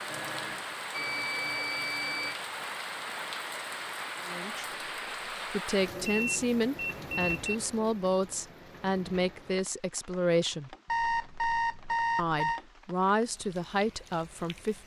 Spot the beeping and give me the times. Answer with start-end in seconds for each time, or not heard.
0.1-2.4, 6.0-7.5, 10.8-12.6.